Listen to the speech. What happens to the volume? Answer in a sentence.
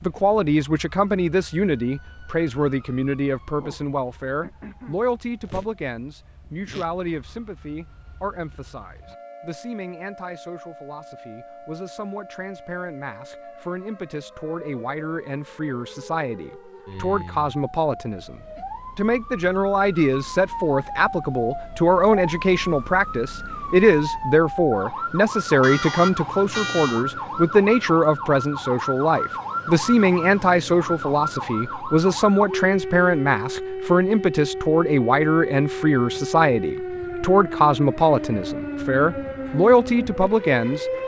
The loudness of the speech goes down, then up.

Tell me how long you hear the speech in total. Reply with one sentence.
You can hear the speech for 41 seconds altogether.